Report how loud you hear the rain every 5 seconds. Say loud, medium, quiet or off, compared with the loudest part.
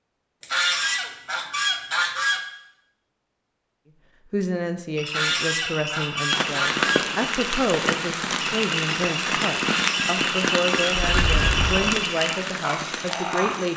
off, loud, loud.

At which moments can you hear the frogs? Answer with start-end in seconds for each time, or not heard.
5.0-13.7.